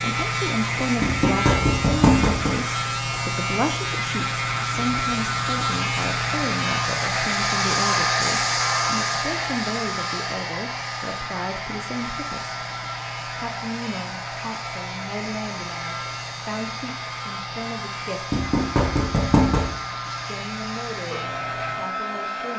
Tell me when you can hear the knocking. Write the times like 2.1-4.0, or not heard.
1.0-2.5, 18.3-19.7.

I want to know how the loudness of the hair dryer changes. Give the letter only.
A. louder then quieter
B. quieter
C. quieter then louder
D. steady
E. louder
A.